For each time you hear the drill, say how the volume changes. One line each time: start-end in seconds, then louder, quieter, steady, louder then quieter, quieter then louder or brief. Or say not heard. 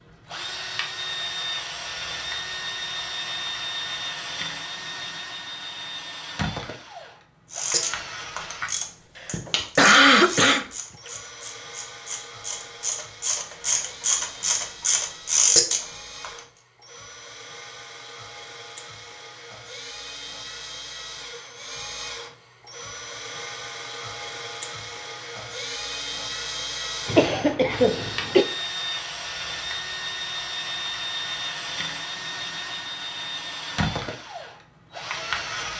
0.0-35.7 quieter then louder.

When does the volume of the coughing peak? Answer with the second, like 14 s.
10 s.